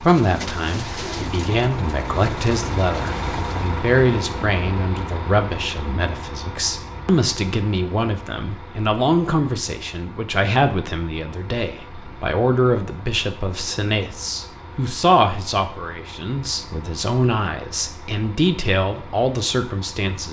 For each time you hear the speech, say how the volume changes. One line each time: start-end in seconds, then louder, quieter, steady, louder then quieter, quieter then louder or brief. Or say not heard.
0.0-20.2 steady.